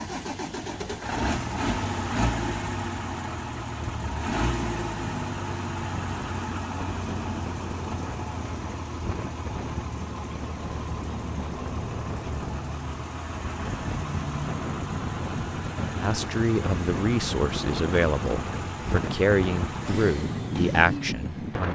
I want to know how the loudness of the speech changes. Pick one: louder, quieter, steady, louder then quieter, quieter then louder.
steady.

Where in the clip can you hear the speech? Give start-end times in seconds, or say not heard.
16.0-21.7.